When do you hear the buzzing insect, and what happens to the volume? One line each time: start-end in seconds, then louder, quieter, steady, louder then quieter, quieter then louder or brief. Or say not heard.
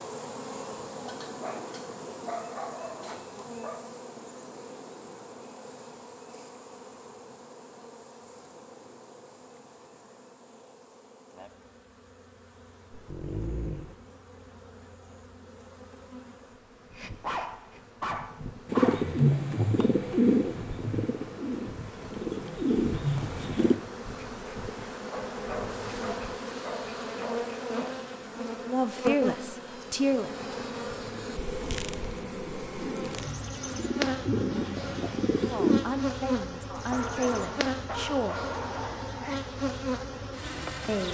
0.0-41.0 quieter then louder.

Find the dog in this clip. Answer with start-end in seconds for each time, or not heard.
0.9-3.8, 12.9-13.9, 17.2-19.1, 25.1-27.9, 36.7-39.4.